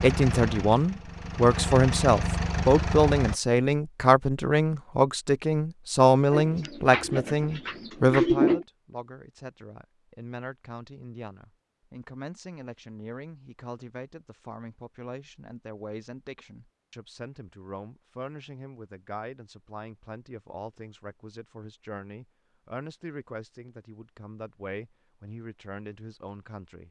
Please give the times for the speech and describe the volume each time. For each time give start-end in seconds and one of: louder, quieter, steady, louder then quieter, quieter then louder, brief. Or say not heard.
0.0-26.8 quieter.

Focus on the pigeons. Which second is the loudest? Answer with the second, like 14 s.
8 s.